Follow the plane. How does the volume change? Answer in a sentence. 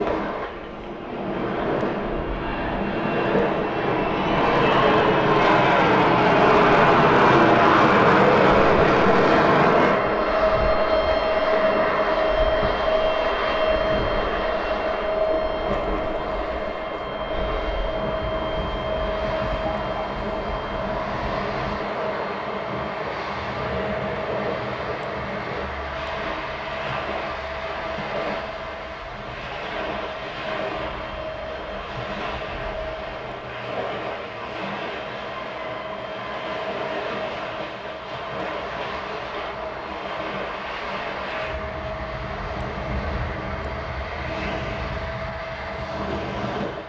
The loudness of the plane goes down.